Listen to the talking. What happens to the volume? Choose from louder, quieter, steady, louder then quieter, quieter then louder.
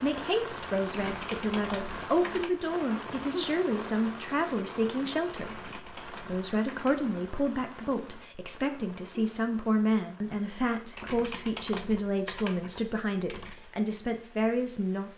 steady.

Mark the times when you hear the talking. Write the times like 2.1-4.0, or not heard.
0.0-15.1.